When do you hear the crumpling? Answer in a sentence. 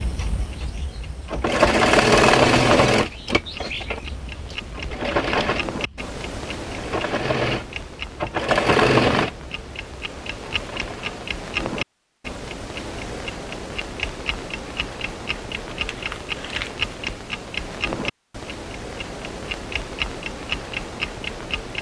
You can hear the crumpling from 15.7 to 16.9 s.